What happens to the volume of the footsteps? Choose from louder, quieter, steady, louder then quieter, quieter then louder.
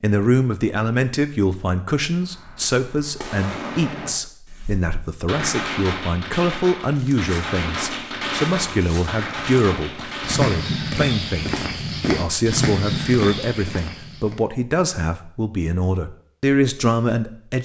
louder.